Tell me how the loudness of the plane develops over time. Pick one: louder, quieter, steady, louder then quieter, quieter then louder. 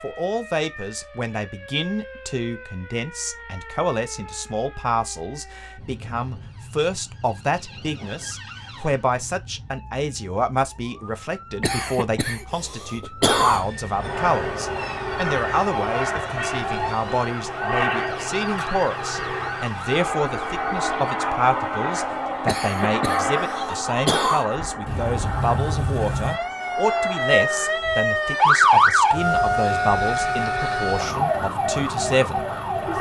quieter.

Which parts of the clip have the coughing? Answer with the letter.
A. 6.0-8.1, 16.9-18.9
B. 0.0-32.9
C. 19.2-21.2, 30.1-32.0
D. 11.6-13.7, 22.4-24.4
D.